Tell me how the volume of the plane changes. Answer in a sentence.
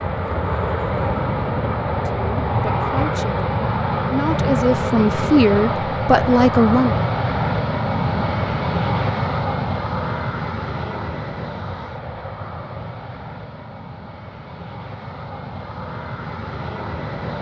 The loudness of the plane goes down.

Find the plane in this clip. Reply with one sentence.
You can hear the plane from 0.0 to 17.3 s.